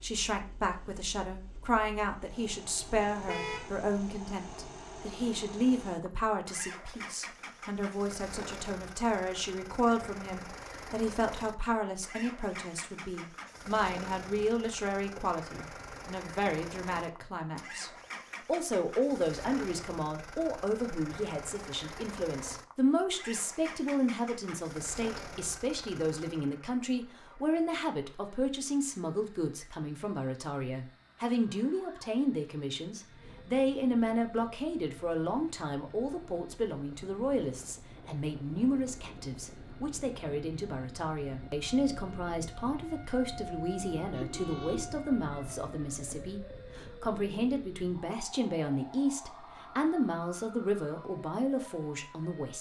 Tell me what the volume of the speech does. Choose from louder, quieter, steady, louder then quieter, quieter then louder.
steady.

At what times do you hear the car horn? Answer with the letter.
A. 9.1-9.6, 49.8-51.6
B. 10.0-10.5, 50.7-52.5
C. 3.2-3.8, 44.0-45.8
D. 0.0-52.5
C.